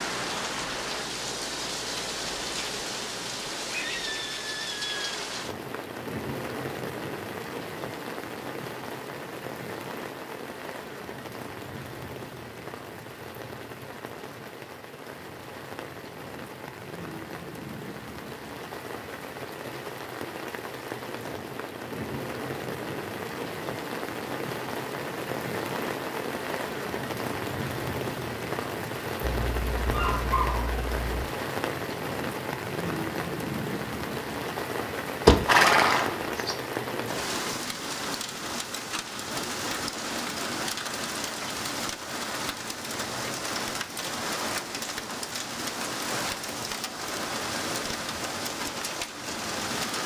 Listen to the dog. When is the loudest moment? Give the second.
30 s.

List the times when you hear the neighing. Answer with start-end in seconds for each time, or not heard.
35.2-36.5.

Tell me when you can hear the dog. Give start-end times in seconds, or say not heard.
29.2-31.2.